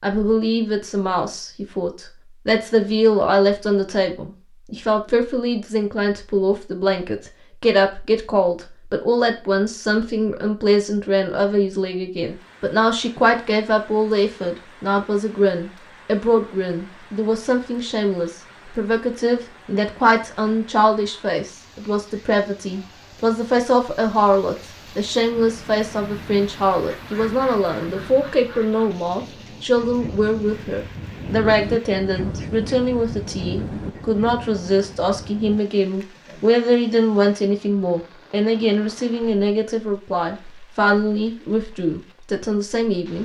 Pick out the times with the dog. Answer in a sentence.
You can't hear the dog here.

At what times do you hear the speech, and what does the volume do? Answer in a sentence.
You can hear the speech from 0.0 to 43.2 s, at a steady volume.